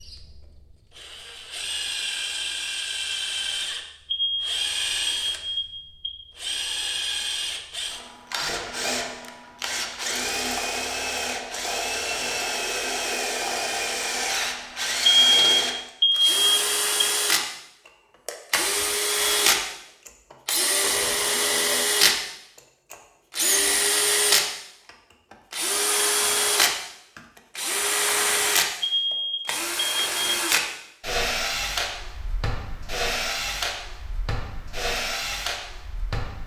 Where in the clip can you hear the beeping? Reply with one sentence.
The beeping can be heard from 4.0 to 6.1 s, from 15.1 to 17.1 s and from 28.8 to 30.4 s.